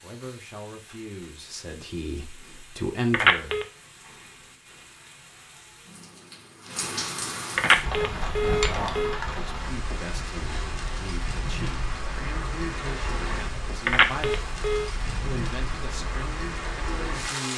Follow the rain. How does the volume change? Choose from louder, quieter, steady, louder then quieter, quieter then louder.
louder.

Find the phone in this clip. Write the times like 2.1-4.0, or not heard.
3.1-3.6, 7.5-9.2, 13.8-14.9.